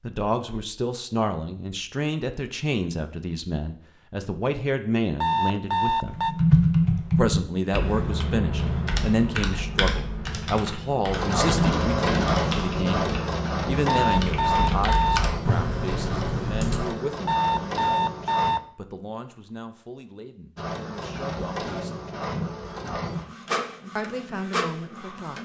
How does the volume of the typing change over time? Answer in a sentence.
The volume of the typing goes down, then up.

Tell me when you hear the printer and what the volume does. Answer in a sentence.
You can hear the printer from 11.1 to 18.6 s, getting quieter; and from 20.6 to 25.4 s, at a steady volume.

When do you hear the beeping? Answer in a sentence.
The beeping can be heard from 5.2 to 6.3 s, from 13.8 to 15.2 s and from 17.2 to 18.6 s.